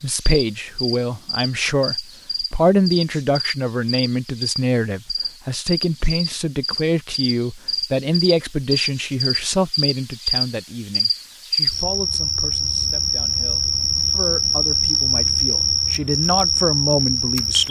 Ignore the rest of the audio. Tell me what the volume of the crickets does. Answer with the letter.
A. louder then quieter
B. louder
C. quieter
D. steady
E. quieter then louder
B.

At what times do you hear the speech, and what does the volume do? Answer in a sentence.
The speech can be heard from 0.0 to 17.6 s, getting quieter then louder.